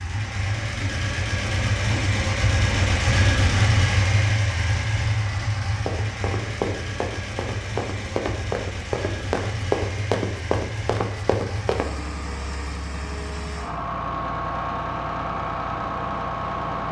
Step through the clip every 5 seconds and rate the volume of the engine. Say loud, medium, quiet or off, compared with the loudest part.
loud, medium, medium, loud.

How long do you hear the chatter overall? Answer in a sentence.
The chatter can't be heard in this clip.